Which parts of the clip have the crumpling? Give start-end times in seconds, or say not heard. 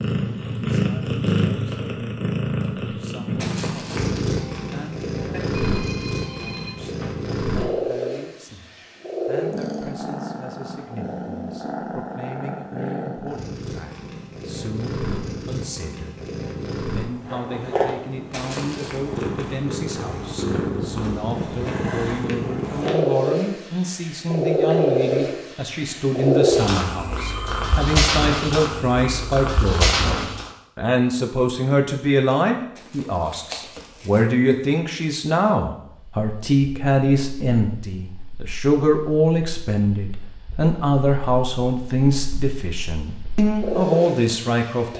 3.4-4.2, 18.3-19.0, 32.8-34.2.